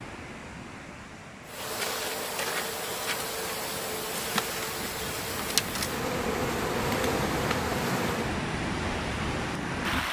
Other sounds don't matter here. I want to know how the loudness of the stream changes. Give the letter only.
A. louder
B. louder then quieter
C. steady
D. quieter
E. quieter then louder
A.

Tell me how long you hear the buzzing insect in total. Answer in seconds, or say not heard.
7 s.